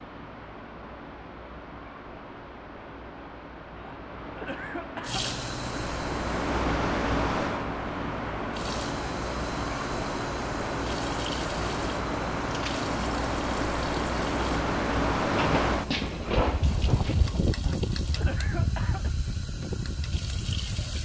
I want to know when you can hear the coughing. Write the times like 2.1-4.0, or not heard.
3.8-5.3, 17.6-19.1.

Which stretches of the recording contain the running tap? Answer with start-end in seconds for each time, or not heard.
5.0-6.5, 8.5-21.0.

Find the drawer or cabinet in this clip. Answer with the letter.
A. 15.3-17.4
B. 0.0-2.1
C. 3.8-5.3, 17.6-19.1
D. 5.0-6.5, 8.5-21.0
A.